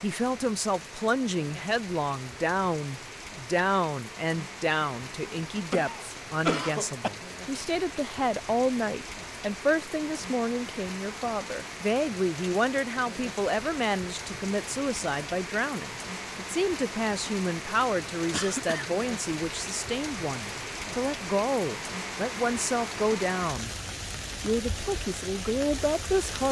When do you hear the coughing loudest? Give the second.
7 s.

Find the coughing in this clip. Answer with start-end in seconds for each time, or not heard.
5.2-7.1, 18.3-18.9.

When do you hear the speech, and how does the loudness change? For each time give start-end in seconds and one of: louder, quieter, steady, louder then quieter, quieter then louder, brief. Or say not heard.
0.0-23.7 steady
24.4-26.4 brief.